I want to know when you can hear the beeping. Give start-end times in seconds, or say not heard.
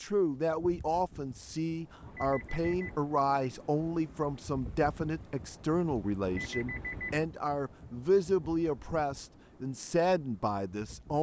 2.0-3.0, 6.2-7.2.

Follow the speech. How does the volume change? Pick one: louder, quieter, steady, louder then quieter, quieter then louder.
steady.